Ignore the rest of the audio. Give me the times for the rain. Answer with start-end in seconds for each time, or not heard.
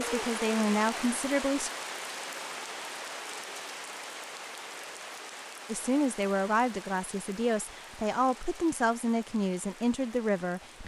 0.0-10.8.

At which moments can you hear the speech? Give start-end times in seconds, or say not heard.
0.0-1.7, 5.7-10.8.